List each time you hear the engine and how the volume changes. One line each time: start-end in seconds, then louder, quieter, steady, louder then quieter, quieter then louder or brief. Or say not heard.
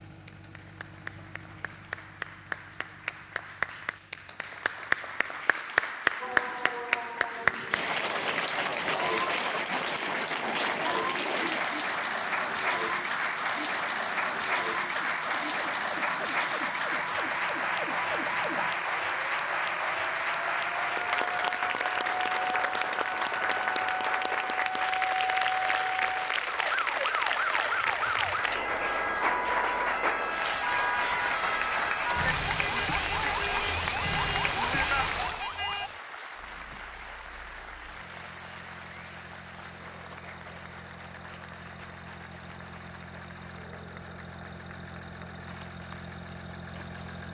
0.0-5.5 quieter
36.3-47.2 louder.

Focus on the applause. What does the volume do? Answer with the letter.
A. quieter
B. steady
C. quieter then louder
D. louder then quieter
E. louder
A.